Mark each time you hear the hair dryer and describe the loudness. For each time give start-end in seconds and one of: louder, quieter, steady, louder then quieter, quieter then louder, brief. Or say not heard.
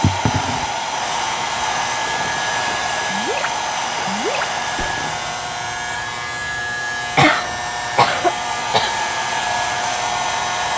0.0-10.7 quieter then louder.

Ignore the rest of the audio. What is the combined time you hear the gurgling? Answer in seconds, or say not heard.
3 s.